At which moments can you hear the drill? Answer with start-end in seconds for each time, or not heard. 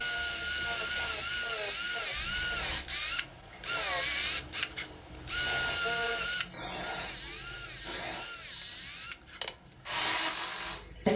0.0-10.8.